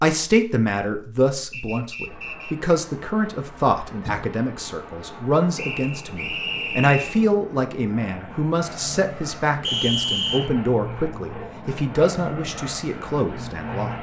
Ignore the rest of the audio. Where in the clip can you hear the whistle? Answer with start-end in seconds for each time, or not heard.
1.5-2.7, 5.5-7.2, 9.6-10.5.